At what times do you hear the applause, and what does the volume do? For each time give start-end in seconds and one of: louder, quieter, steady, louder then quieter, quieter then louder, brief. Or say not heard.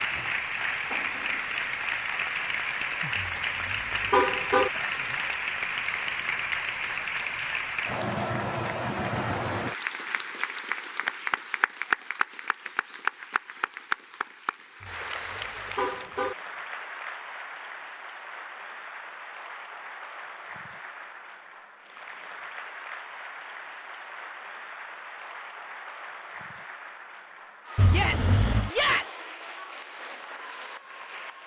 0.0-31.4 quieter.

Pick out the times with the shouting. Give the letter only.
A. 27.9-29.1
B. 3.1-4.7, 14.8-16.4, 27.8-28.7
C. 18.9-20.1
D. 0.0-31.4
A.